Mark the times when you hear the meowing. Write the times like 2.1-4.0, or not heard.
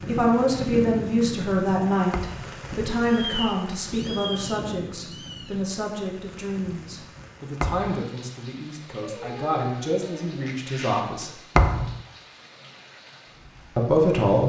3.2-5.7, 9.0-11.1.